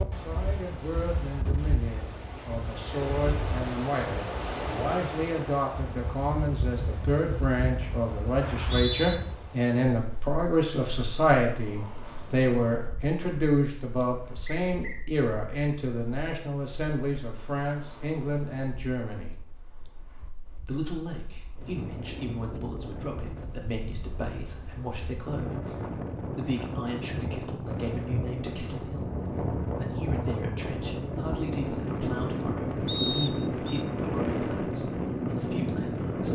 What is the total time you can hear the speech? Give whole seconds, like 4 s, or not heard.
35 s.